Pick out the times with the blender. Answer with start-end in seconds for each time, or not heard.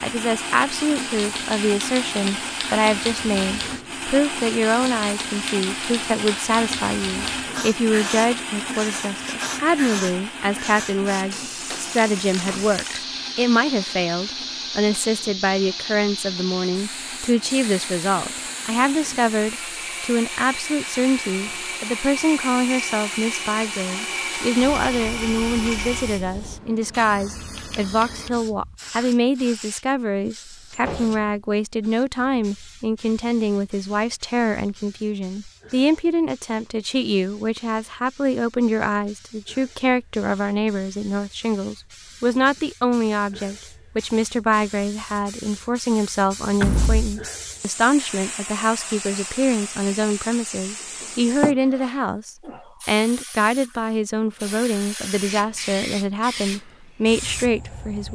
0.0-26.2.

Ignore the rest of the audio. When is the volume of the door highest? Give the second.
47 s.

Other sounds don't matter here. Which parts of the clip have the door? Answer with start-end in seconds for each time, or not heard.
11.7-12.8, 30.7-31.3, 46.6-47.2.